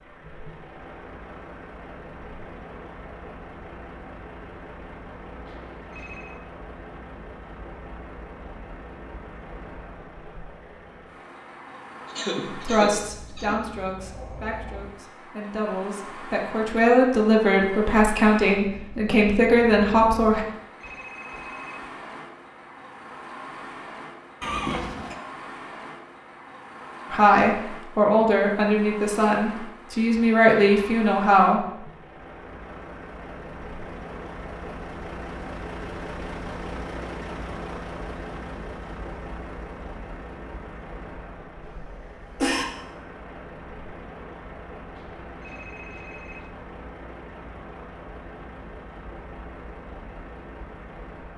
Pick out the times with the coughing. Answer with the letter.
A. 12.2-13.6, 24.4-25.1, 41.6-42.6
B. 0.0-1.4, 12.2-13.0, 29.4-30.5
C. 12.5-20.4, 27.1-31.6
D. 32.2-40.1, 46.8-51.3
A.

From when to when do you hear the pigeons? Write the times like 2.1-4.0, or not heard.
not heard.